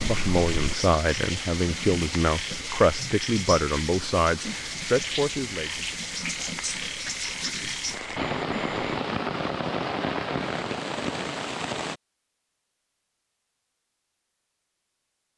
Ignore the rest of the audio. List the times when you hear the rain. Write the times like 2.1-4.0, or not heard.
0.0-12.0.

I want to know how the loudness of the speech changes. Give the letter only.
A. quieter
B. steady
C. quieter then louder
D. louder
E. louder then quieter
B.